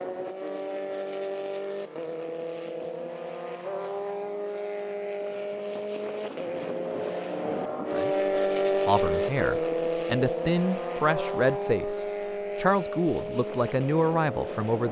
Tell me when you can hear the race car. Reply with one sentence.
The race car can be heard from 0.0 to 14.8 s.